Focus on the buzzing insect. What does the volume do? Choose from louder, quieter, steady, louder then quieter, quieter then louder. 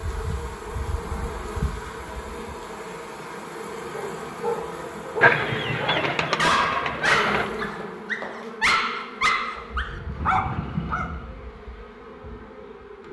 quieter.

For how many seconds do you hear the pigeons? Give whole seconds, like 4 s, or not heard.
2 s.